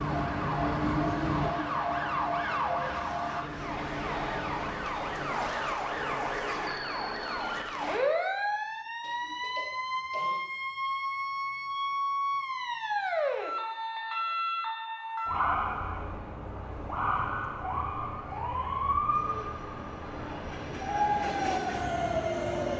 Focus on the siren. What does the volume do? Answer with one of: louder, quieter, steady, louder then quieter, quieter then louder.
steady.